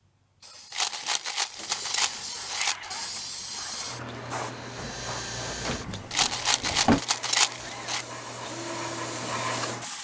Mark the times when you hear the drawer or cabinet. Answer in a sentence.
You can hear the drawer or cabinet from 0.9 to 3.0 s and from 5.7 to 7.0 s.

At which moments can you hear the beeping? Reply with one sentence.
You can't hear the beeping here.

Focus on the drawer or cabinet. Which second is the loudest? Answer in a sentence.
The loudest moment of the drawer or cabinet is at 7 seconds.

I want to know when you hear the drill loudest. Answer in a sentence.
The loudest moment of the drill is at 5 seconds.